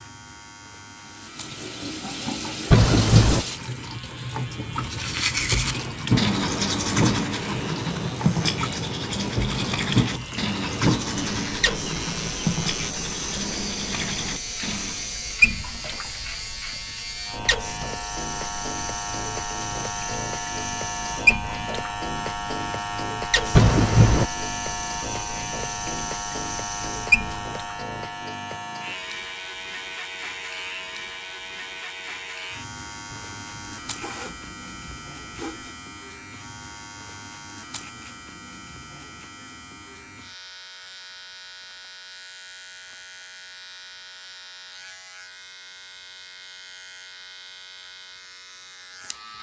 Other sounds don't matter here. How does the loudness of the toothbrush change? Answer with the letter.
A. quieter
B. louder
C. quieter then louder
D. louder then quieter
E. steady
A.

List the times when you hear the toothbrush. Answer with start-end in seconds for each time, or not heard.
4.7-15.2.